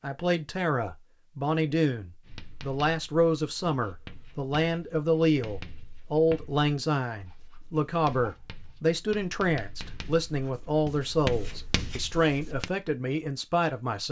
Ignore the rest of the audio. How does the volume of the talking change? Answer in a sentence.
The volume of the talking stays about the same.